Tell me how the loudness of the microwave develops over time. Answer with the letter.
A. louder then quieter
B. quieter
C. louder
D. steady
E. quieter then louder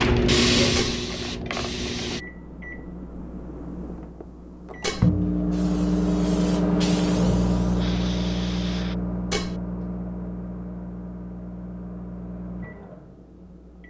A.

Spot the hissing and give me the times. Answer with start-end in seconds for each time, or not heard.
0.0-2.2, 5.5-8.9.